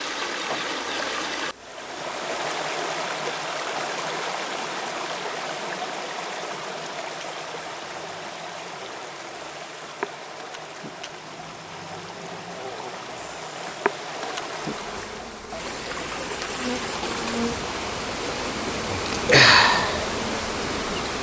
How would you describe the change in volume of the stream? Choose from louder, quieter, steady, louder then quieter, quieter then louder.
quieter then louder.